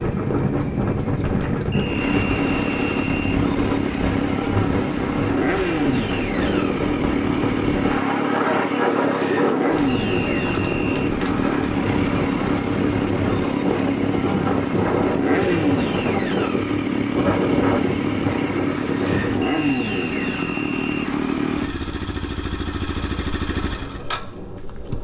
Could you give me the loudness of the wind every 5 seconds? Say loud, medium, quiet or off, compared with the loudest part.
loud, loud, loud, loud, quiet.